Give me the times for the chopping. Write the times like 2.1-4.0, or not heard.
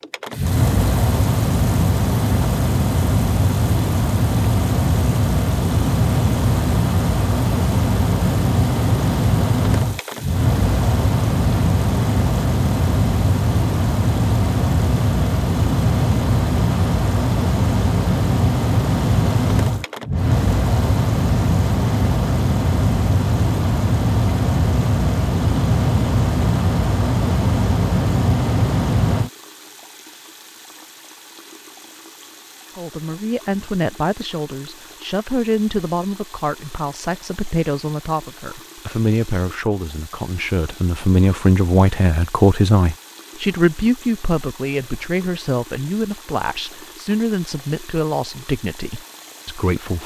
not heard.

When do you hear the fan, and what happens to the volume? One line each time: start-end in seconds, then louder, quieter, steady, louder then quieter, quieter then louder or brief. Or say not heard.
0.0-29.3 steady.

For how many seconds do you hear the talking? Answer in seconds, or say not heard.
17 s.